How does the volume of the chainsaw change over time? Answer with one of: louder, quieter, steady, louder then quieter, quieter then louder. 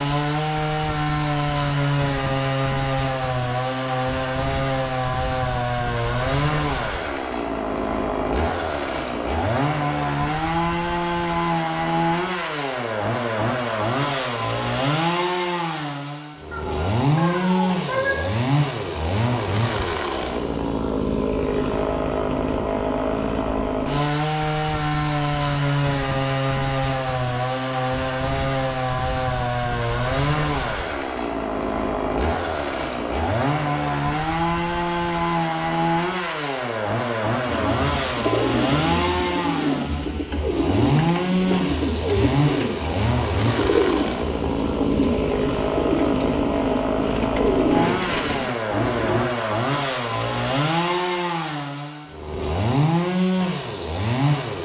steady.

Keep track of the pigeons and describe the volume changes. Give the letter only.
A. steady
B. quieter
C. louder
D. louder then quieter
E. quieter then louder
A.